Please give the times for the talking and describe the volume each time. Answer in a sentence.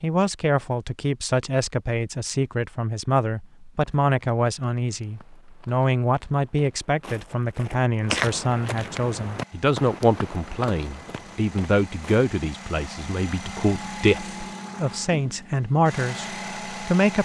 You can hear the talking from 0.0 to 17.2 s, at a steady volume.